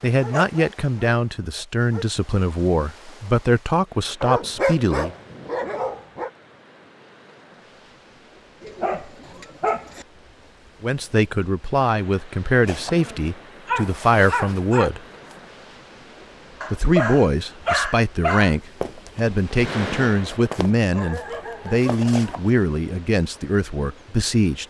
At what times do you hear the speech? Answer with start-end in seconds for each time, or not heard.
0.0-5.1, 10.8-15.0, 16.7-24.6.